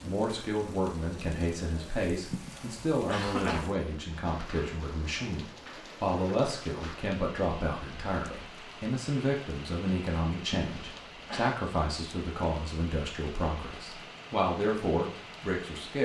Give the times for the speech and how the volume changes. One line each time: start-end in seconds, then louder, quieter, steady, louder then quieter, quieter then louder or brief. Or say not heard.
0.0-16.0 steady.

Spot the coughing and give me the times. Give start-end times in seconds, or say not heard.
2.3-3.8, 10.7-11.6.